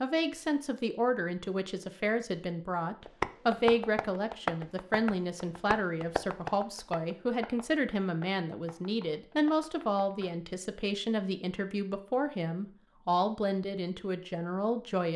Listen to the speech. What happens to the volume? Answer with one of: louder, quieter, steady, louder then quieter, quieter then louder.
steady.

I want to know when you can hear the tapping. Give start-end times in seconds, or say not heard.
3.0-10.3.